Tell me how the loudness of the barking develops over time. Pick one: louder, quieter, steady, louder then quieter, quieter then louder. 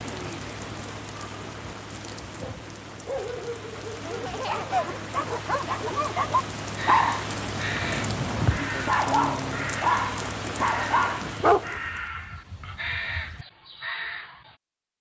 louder.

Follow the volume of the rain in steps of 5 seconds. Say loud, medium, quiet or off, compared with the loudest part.
medium, loud, loud.